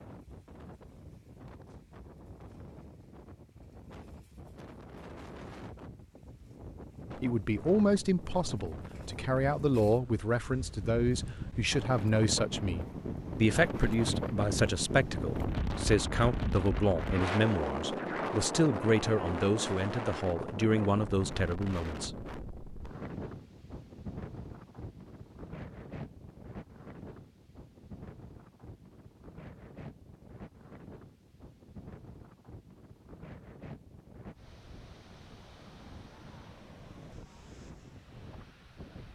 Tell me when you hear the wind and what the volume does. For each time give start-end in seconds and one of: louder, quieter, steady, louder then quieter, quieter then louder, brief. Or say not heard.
0.0-39.1 louder then quieter.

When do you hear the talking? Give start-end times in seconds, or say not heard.
7.2-22.1.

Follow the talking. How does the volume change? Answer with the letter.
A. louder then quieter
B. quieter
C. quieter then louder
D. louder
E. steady
E.